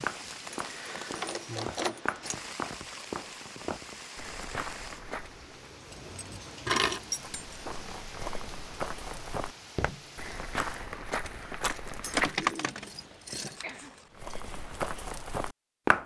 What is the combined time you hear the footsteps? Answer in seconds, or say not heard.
13 s.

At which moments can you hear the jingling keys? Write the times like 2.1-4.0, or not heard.
0.5-2.4, 5.9-7.7, 12.0-14.3.